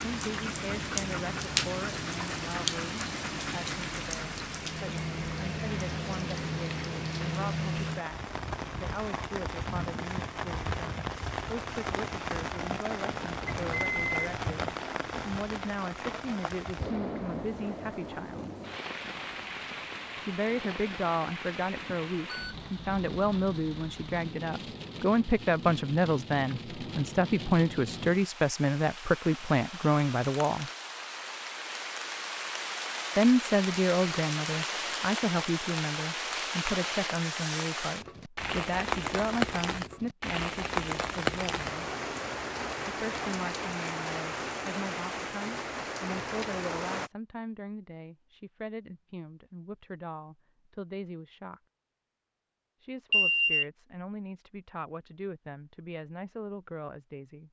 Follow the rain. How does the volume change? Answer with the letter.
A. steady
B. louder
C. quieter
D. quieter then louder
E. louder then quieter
D.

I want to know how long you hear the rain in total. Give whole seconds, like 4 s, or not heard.
47 s.